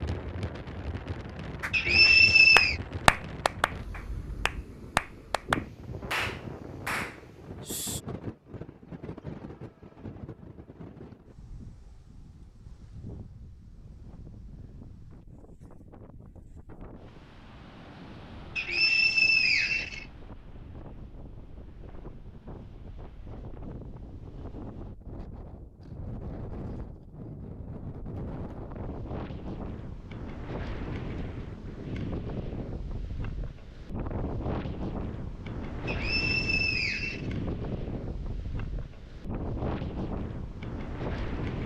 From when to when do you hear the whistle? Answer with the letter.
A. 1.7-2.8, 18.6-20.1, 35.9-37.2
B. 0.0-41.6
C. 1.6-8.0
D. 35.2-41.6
A.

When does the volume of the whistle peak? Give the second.
2 s.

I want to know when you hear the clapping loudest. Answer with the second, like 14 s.
3 s.